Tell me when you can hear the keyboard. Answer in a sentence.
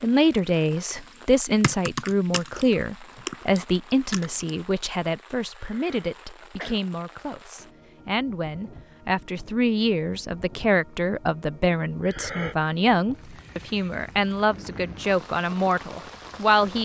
The keyboard can be heard from 1.6 to 4.5 s.